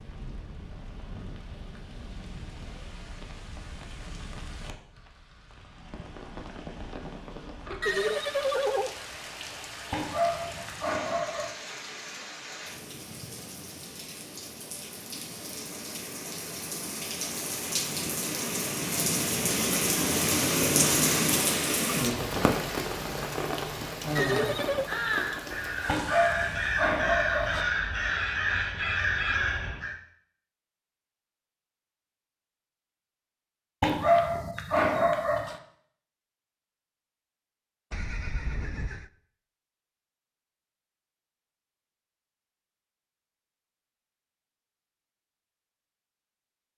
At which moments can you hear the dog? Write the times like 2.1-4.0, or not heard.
9.9-11.5, 25.9-27.6, 33.8-35.6.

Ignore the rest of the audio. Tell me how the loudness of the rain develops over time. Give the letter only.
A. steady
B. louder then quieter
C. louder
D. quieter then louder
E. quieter
C.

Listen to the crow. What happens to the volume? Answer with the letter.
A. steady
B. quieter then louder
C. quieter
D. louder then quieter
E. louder
E.